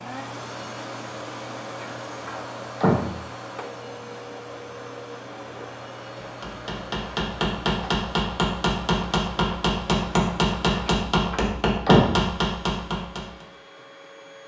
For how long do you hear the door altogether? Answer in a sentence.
You can hear the door for 3 seconds altogether.